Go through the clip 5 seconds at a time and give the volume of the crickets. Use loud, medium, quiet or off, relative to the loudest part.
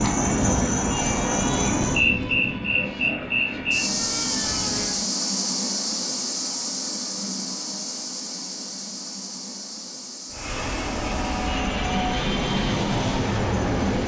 loud, medium, quiet.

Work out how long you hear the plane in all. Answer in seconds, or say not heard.
9 s.